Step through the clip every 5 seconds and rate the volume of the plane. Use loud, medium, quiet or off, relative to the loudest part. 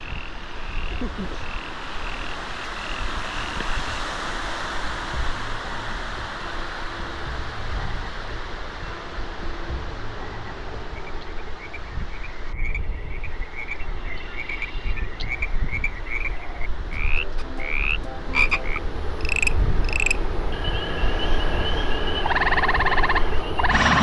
quiet, quiet, quiet, medium, loud.